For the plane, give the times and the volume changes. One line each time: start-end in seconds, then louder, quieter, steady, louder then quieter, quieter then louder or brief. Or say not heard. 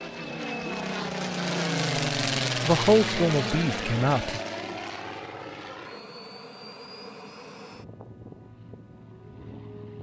0.0-9.9 quieter.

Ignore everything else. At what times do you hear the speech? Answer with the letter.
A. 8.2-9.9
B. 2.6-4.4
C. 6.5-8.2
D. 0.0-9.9
B.